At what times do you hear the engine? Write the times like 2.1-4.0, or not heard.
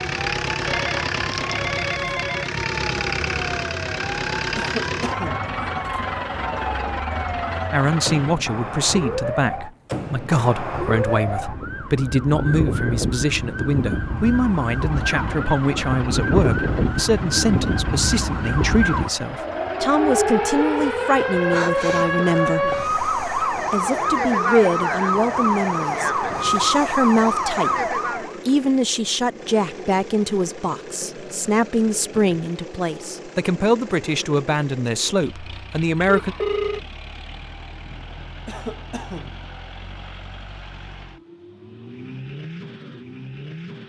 0.0-8.4, 14.8-43.8.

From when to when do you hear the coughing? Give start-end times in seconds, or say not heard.
4.5-5.5, 21.9-22.9, 38.5-39.4.